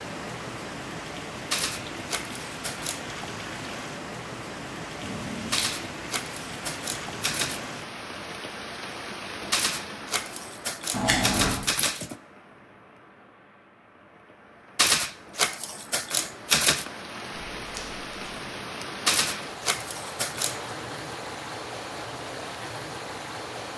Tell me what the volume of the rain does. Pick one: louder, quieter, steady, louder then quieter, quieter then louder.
quieter then louder.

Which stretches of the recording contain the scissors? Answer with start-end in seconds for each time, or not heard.
5.0-5.7, 10.9-11.6, 17.6-18.4.